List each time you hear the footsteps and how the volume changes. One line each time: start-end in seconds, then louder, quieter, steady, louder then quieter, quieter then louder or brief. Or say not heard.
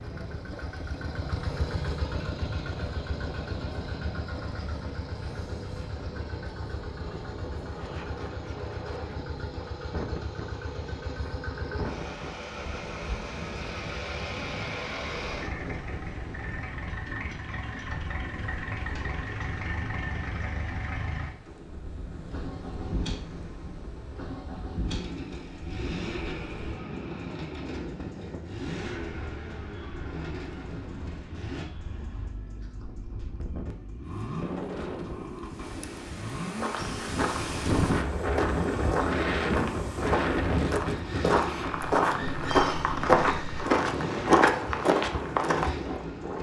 36.4-45.9 louder.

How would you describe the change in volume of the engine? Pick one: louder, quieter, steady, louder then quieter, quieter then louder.
steady.